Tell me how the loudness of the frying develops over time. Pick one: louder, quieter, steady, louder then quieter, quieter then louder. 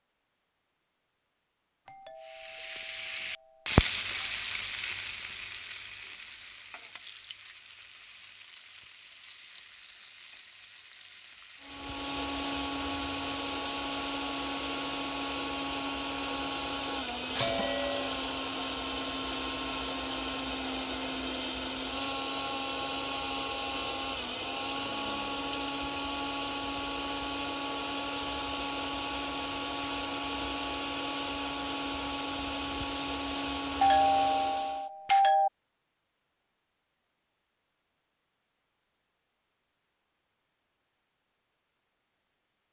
quieter.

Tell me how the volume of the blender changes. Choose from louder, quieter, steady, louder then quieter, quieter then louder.
steady.